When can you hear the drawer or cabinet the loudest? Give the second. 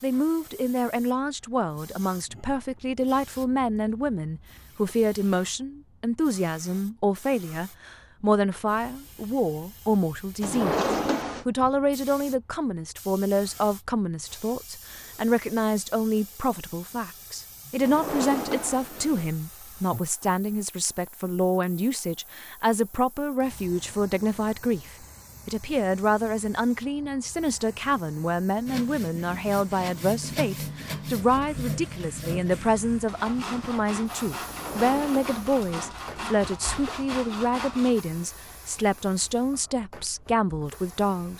11 s.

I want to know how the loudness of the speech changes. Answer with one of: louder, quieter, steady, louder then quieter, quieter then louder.
steady.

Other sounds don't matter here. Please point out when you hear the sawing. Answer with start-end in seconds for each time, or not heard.
28.6-38.0.